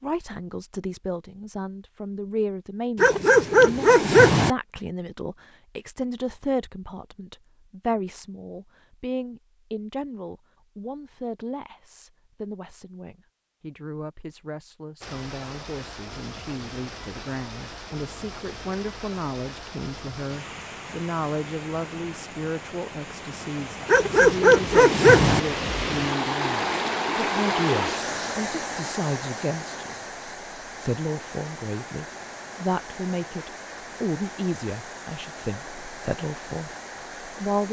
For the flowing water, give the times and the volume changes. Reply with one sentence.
You can hear the flowing water from 15.0 to 37.6 s, getting louder then quieter.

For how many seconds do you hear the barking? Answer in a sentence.
The barking can be heard for 3 seconds in total.